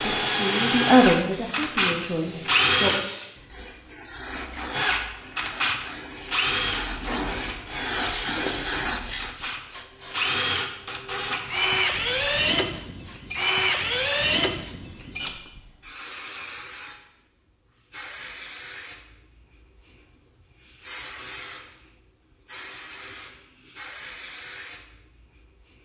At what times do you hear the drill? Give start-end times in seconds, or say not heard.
0.0-3.1, 4.7-15.4.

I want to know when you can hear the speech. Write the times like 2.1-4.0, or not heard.
0.0-3.0.